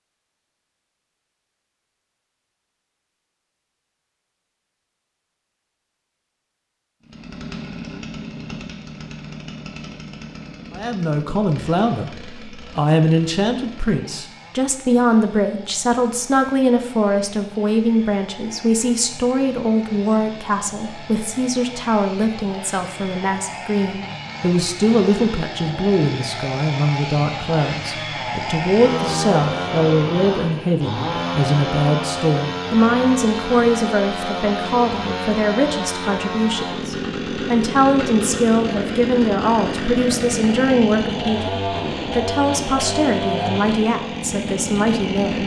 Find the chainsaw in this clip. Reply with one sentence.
You can hear the chainsaw from 7.0 to 45.4 s.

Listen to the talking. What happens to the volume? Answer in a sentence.
The loudness of the talking stays about the same.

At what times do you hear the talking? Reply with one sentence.
You can hear the talking from 10.7 to 45.4 s.